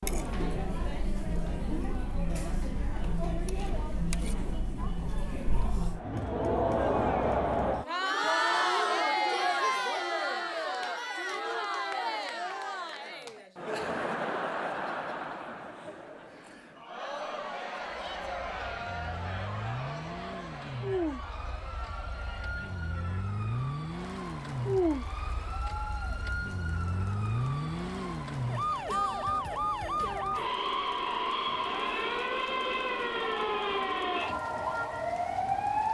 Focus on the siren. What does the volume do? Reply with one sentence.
The volume of the siren goes up.